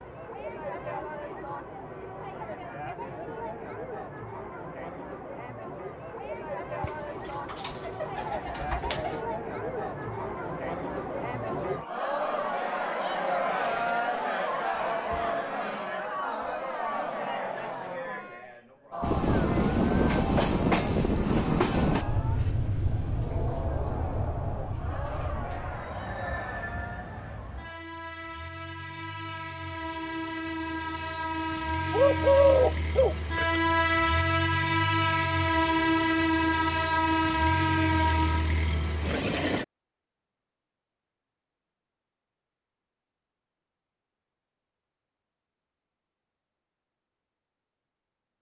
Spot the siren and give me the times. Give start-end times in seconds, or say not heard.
not heard.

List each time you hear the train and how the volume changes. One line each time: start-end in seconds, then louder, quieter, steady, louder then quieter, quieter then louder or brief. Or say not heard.
19.0-39.6 quieter then louder.